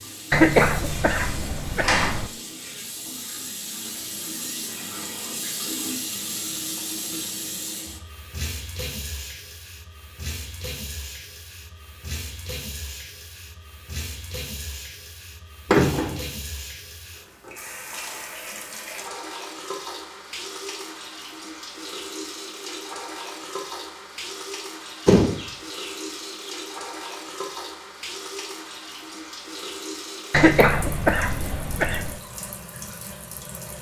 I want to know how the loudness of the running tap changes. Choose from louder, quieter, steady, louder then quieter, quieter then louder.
steady.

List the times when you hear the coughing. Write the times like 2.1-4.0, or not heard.
0.3-2.3, 30.3-32.2.